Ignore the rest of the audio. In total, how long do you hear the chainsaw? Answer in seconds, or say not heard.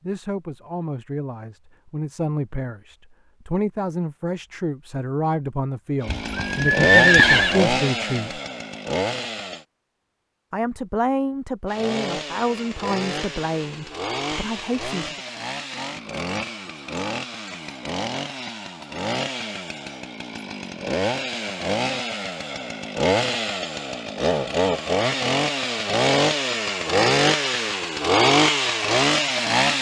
22 s.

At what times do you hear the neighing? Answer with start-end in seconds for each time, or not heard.
6.0-7.6.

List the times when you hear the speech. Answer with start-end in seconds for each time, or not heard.
0.0-8.4, 10.5-15.2.